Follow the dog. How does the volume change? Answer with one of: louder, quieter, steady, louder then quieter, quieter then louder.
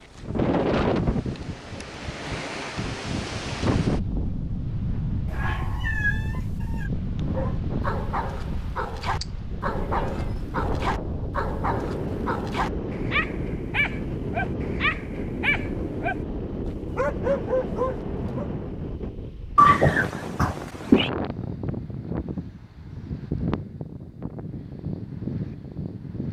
louder.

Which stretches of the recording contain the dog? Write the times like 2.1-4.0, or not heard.
7.2-18.5.